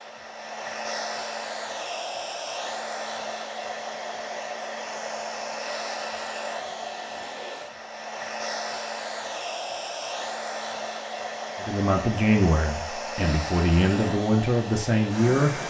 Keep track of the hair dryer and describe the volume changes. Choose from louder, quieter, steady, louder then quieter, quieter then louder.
steady.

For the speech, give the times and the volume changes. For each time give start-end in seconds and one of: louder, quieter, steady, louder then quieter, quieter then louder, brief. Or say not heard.
11.6-15.6 quieter then louder.